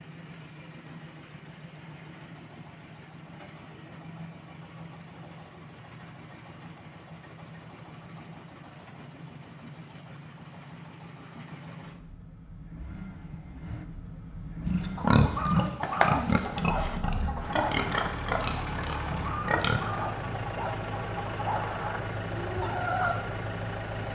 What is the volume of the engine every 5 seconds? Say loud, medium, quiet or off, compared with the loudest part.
medium, medium, medium, loud, loud.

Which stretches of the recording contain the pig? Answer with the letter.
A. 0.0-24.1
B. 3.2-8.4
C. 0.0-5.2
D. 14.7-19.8
D.